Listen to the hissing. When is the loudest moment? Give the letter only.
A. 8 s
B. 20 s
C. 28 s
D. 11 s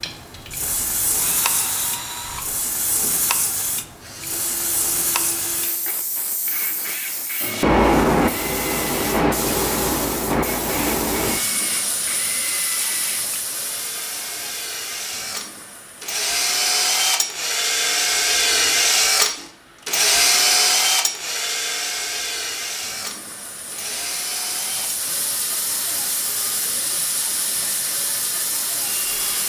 A.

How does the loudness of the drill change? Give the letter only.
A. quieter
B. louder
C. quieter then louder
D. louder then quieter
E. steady
D.